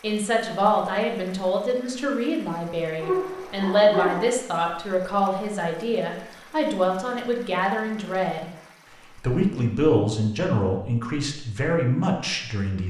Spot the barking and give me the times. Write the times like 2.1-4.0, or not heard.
3.0-4.2.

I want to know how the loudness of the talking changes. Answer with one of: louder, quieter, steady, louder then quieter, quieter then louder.
steady.